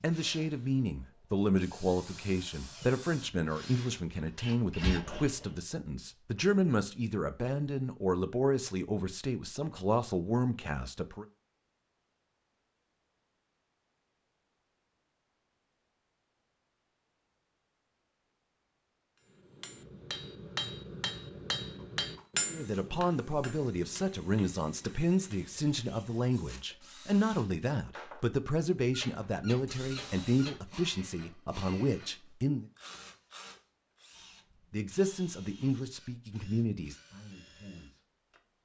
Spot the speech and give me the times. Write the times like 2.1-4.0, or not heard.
0.0-11.2, 22.5-32.6, 34.7-38.0.